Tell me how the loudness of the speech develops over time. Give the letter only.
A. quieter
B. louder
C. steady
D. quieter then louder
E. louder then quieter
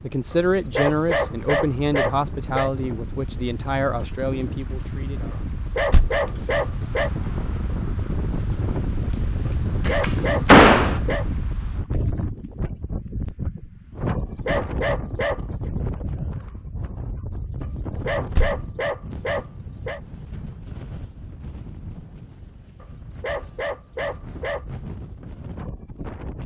A.